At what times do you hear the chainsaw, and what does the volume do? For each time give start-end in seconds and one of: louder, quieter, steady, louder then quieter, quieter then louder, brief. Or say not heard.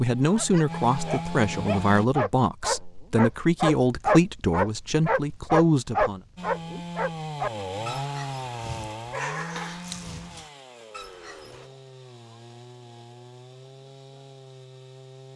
0.0-2.0 brief
6.3-15.3 quieter.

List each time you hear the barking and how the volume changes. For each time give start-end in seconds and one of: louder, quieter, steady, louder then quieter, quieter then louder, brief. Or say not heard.
0.3-11.7 louder then quieter.